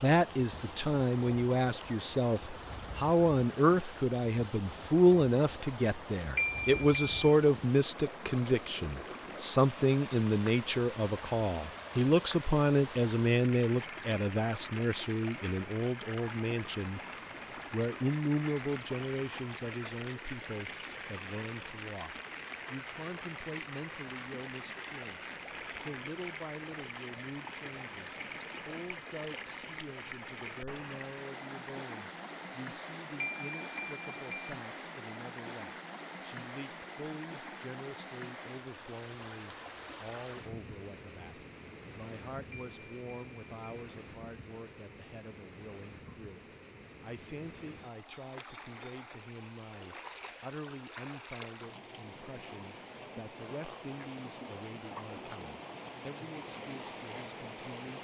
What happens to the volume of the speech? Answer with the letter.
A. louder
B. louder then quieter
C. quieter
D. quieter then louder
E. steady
C.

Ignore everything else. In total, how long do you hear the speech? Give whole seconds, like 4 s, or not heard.
58 s.